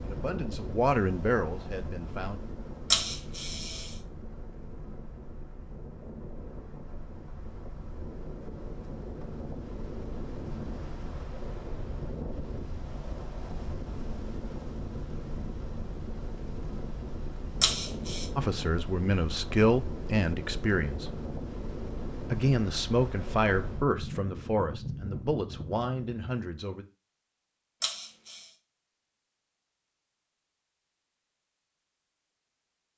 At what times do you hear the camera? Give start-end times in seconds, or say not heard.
2.9-4.0, 17.6-18.2, 27.8-28.5.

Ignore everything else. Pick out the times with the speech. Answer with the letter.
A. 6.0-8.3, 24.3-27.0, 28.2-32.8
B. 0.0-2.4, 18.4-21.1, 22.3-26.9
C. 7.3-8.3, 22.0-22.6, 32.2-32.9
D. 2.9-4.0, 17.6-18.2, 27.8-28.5
B.